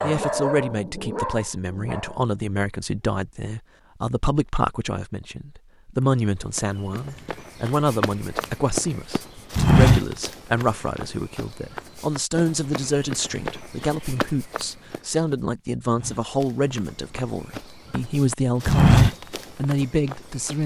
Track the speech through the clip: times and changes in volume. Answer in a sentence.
You can hear the speech from 0.0 to 20.6 s, at a steady volume.